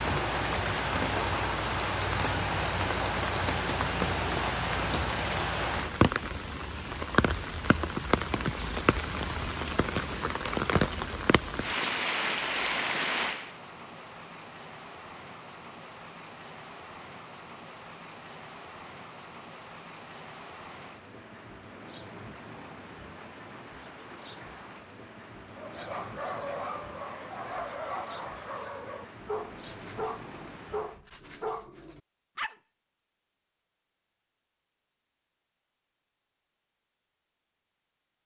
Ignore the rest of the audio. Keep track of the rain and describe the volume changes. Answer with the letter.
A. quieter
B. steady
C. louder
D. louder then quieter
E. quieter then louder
A.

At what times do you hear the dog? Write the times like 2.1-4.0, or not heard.
25.5-32.5.